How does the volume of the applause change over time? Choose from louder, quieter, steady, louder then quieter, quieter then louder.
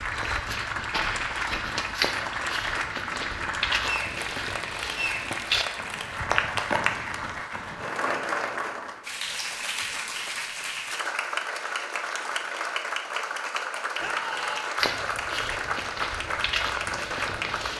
steady.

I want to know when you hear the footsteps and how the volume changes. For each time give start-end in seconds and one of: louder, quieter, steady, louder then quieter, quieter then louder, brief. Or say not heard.
0.0-7.8 steady
14.8-17.7 brief.